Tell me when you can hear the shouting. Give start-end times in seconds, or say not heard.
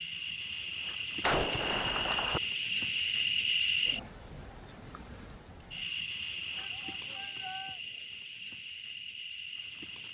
6.5-7.8.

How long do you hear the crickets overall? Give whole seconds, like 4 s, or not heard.
10 s.